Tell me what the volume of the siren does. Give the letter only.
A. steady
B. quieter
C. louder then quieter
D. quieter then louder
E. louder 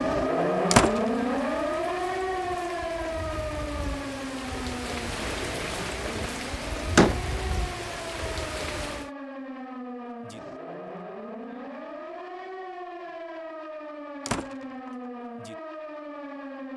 B.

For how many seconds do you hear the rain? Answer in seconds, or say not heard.
9 s.